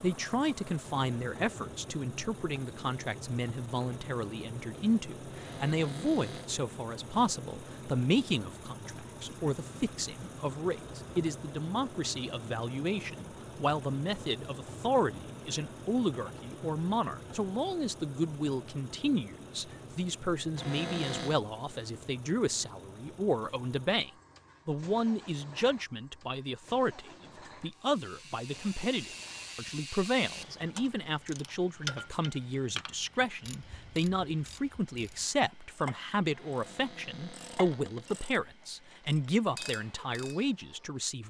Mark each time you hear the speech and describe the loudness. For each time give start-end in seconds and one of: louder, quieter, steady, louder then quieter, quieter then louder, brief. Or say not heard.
0.0-41.2 steady.